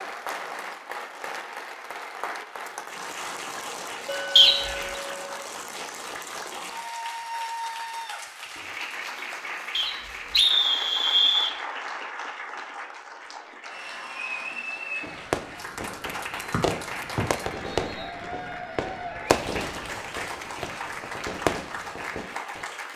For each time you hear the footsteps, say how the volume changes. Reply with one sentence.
The footsteps can't be heard in this clip.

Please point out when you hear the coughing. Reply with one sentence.
You can't hear the coughing here.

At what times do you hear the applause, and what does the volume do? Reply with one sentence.
You can hear the applause from 0.0 to 22.9 s, at a steady volume.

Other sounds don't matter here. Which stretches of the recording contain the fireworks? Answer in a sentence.
You can hear the fireworks from 15.0 to 22.6 s.